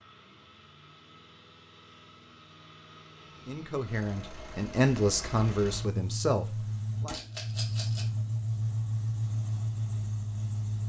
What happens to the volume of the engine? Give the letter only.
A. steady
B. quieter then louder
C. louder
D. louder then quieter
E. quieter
C.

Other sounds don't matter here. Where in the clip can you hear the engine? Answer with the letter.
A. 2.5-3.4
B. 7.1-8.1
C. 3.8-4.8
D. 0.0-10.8
D.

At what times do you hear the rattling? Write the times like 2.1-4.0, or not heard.
7.1-8.1.